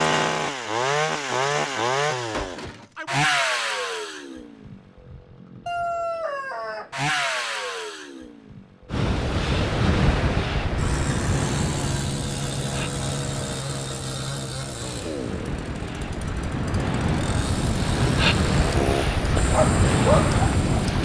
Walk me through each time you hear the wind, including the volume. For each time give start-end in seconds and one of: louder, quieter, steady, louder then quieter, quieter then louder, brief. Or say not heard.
8.9-21.0 quieter then louder.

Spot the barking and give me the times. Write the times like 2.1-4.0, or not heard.
19.4-20.9.